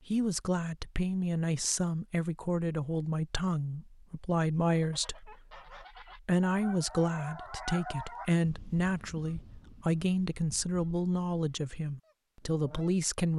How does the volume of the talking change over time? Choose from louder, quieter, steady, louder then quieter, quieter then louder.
steady.